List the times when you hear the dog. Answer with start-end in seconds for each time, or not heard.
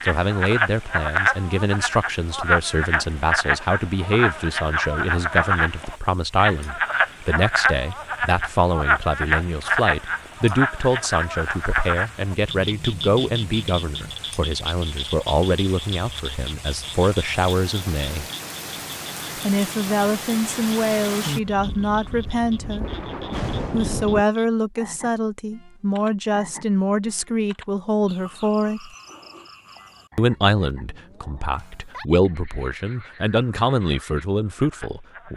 not heard.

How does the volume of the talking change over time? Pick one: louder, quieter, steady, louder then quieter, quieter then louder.
steady.